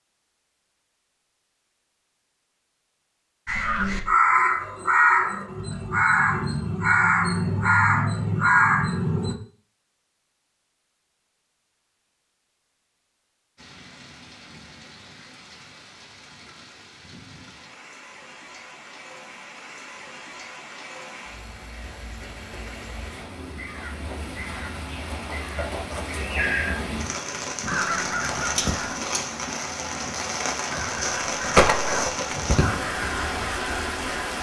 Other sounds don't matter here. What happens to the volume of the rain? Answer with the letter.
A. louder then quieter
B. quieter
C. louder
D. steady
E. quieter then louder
C.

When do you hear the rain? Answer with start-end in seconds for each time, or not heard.
13.6-34.3.